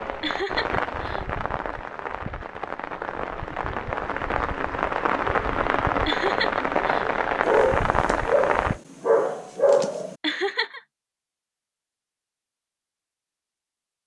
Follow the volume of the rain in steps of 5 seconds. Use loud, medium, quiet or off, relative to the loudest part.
medium, loud, off.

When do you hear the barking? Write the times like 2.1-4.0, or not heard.
7.4-10.2.